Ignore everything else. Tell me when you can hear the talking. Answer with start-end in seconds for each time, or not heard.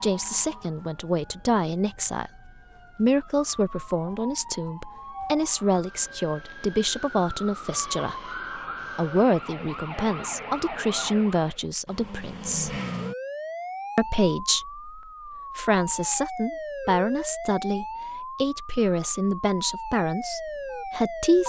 0.0-2.3, 3.0-8.3, 8.9-12.8, 13.9-21.4.